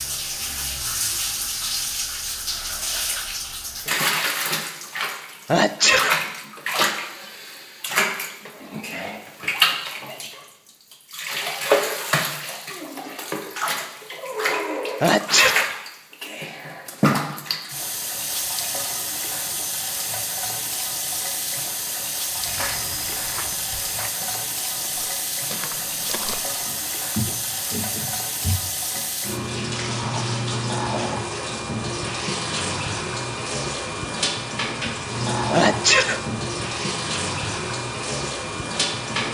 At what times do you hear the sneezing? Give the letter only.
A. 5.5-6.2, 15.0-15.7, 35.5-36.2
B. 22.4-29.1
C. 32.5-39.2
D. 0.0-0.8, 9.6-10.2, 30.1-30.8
A.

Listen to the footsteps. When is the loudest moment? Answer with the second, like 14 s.
27 s.